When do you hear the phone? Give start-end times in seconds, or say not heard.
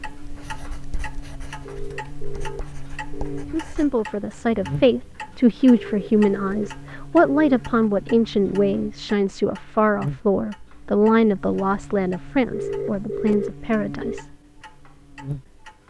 1.6-3.5, 5.7-7.7, 12.5-14.2.